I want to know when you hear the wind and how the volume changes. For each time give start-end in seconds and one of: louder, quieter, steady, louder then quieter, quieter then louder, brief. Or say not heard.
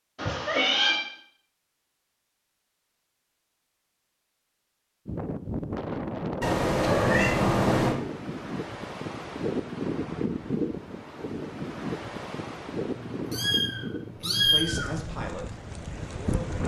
5.0-16.6 quieter.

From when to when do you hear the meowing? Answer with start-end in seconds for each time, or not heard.
0.1-1.0, 6.4-8.0, 12.9-15.0.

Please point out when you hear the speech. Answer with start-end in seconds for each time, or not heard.
14.2-16.6.